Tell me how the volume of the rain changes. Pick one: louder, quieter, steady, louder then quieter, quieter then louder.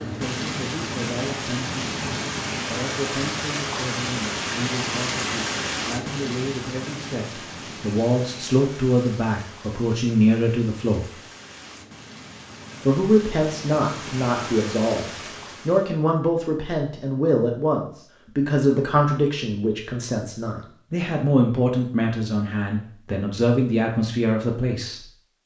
quieter then louder.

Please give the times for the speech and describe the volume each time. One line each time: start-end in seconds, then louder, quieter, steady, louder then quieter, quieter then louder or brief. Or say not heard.
0.0-11.2 louder
12.8-25.0 steady.